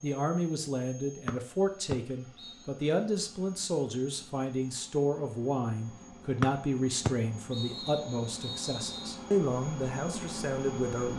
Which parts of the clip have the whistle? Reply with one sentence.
You can hear the whistle from 1.2 to 2.6 s and from 6.4 to 9.1 s.